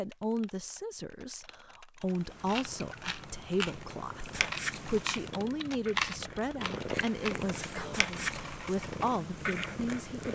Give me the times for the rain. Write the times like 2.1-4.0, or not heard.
not heard.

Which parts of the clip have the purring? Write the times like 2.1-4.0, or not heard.
2.1-10.2.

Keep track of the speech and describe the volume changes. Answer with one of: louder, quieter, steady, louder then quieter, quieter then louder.
steady.